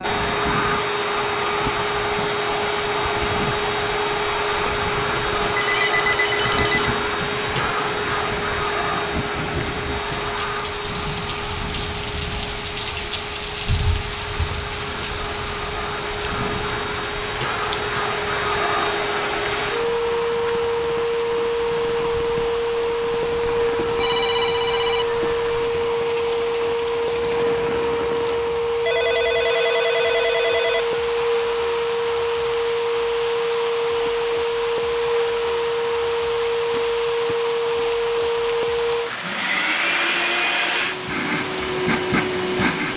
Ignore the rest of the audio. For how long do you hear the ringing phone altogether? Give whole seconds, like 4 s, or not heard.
6 s.